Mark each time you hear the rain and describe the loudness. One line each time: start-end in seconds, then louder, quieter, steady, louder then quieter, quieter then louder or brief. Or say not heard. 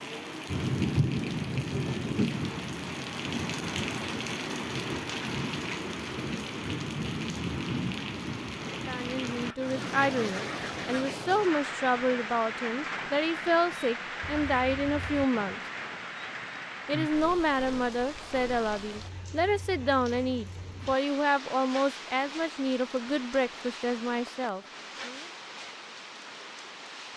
0.0-27.1 quieter.